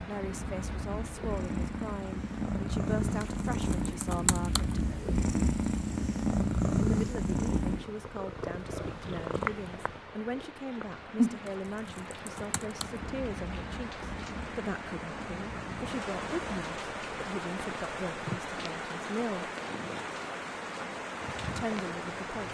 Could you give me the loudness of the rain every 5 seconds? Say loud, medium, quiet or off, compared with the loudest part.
medium, quiet, medium, loud, loud.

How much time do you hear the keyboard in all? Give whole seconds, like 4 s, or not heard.
3 s.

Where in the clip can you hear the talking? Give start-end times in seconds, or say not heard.
0.0-4.7, 6.8-19.5, 21.5-22.5.